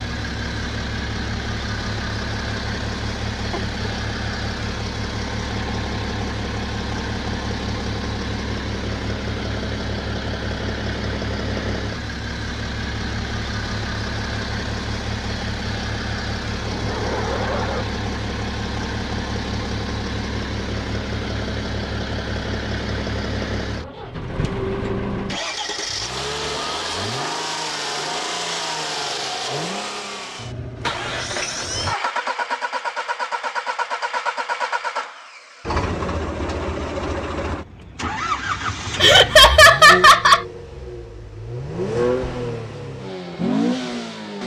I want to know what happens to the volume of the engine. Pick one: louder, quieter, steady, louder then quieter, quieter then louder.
steady.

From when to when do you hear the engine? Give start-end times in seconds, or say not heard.
0.0-44.4.